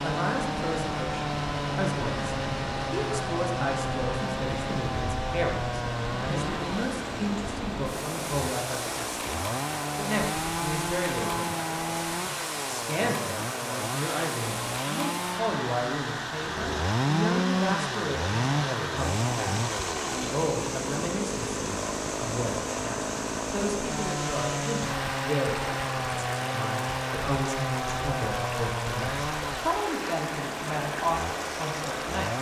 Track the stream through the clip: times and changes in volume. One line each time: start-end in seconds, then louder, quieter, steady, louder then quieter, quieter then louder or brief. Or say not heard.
0.0-32.3 steady.